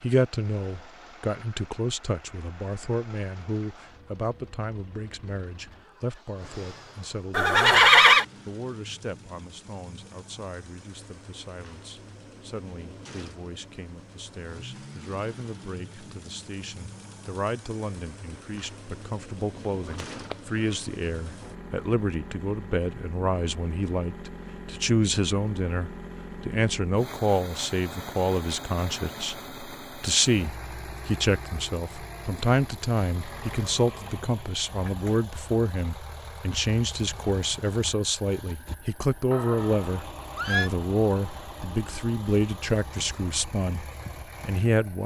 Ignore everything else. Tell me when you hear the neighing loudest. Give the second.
8 s.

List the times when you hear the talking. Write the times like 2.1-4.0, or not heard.
0.0-45.0.